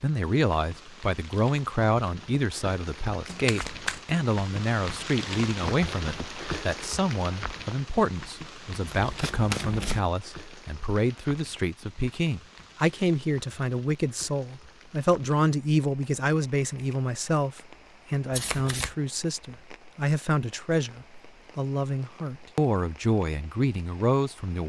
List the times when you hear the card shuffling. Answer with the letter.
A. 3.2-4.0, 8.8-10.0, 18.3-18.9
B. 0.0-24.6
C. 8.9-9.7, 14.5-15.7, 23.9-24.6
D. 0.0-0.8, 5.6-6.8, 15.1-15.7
A.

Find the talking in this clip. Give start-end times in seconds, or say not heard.
0.0-24.6.